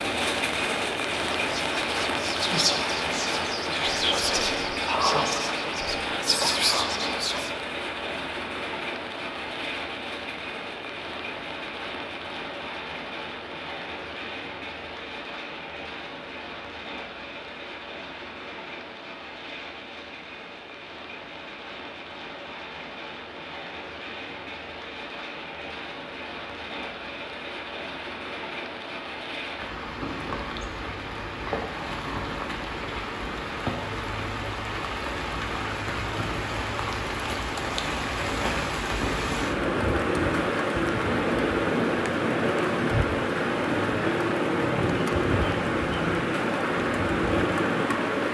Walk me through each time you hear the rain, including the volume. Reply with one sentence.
You can hear the rain from 0.0 to 48.2 s, getting quieter then louder.